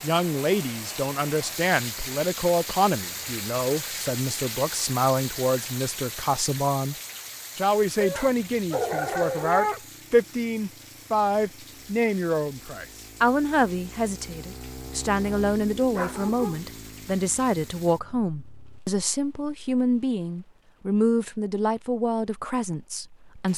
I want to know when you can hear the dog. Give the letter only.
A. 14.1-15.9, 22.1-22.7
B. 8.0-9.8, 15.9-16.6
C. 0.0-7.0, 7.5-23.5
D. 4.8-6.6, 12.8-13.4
B.